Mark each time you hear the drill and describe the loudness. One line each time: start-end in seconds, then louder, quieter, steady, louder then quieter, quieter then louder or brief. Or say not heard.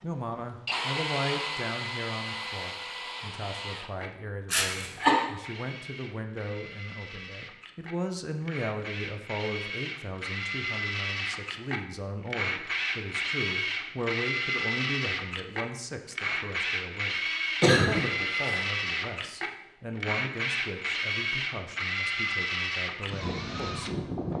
0.0-24.3 quieter then louder.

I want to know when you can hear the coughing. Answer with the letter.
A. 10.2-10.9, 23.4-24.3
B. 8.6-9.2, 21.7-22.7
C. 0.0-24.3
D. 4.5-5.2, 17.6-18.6
D.